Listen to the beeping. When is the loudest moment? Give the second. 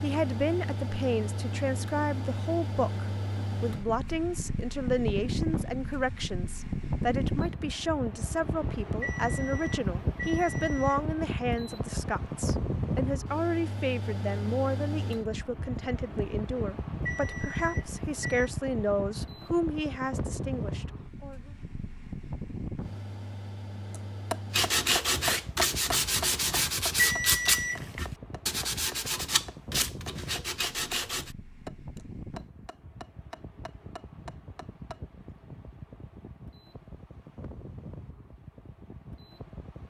27 s.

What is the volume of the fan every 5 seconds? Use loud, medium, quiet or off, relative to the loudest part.
loud, loud, loud, loud, medium, medium, quiet, quiet.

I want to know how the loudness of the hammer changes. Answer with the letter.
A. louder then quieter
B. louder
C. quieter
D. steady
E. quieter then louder
C.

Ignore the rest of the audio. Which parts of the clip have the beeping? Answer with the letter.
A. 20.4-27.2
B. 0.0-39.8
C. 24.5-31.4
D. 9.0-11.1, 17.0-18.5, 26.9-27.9
D.